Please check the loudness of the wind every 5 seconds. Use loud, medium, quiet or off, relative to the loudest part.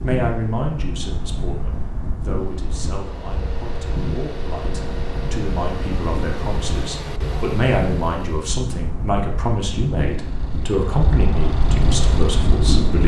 medium, medium, loud.